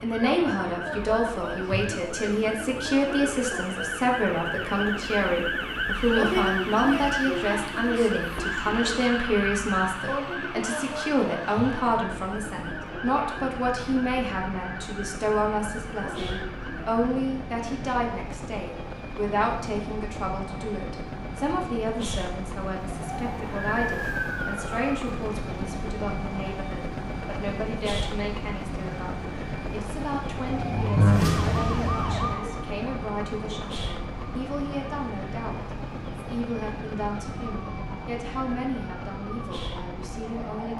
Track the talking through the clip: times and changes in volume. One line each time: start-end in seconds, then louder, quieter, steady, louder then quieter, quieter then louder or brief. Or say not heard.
0.0-40.7 quieter.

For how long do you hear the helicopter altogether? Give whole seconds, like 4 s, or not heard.
41 s.